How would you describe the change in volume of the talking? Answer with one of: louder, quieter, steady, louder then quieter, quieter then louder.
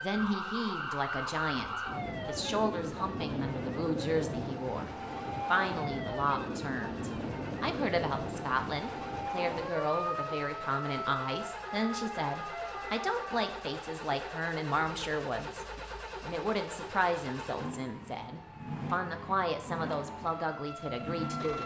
steady.